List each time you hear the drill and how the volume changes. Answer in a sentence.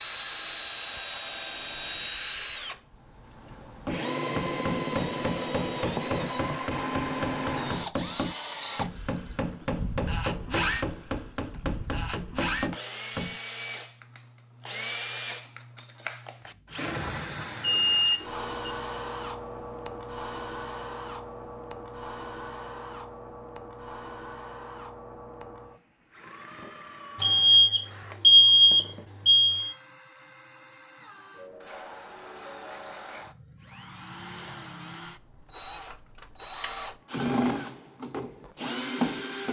You can hear the drill from 0.0 to 39.4 s, getting quieter then louder.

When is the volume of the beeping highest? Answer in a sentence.
The loudest moment of the beeping is at 28 seconds.